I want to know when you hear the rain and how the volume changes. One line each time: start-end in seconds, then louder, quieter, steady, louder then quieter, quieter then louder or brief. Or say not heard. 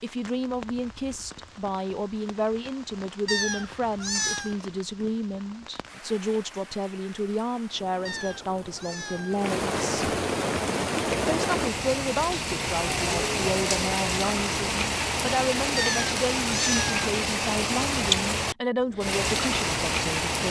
0.0-20.4 louder.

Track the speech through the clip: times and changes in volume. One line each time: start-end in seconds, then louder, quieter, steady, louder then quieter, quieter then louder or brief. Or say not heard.
0.0-10.2 steady
11.3-20.4 steady.